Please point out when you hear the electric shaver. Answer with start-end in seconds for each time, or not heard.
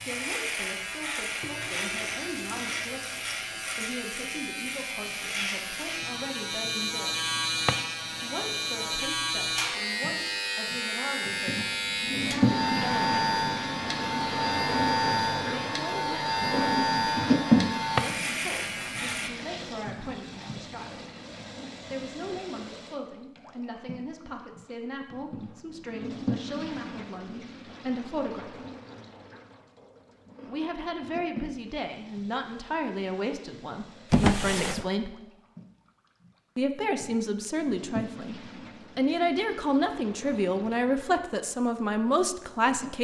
0.0-19.3.